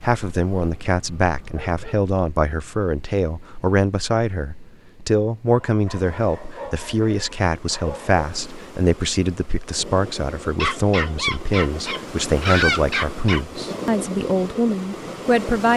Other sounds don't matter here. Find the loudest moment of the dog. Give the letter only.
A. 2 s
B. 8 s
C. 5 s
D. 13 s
D.